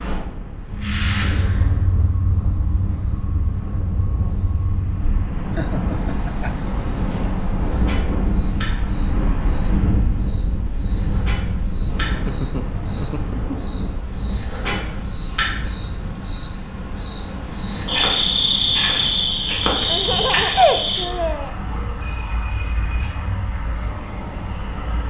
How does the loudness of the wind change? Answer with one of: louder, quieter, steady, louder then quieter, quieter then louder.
louder then quieter.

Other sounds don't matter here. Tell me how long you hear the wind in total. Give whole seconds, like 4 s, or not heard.
25 s.